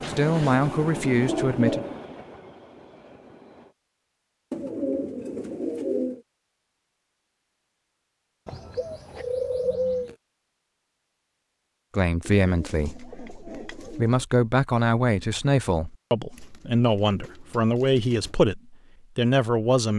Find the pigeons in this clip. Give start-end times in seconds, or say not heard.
0.0-2.0, 4.5-6.2, 8.4-10.2, 12.2-14.2, 16.4-18.4.